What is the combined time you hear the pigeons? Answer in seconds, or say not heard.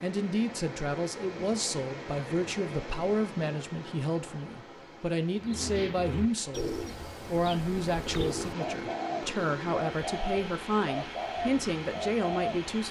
7 s.